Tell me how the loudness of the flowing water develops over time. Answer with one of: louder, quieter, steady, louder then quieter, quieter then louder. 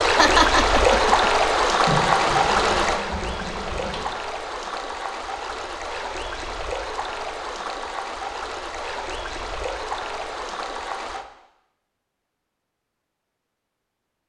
quieter.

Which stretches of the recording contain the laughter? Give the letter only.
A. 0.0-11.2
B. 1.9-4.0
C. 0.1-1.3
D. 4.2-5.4
C.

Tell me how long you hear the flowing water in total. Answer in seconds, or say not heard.
11 s.